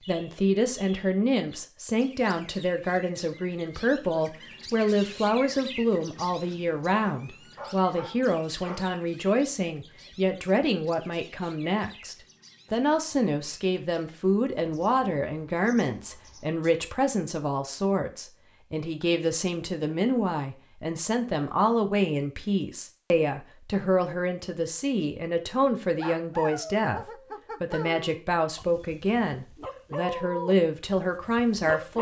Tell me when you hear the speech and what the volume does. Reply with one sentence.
You can hear the speech from 0.1 to 31.9 s, at a steady volume.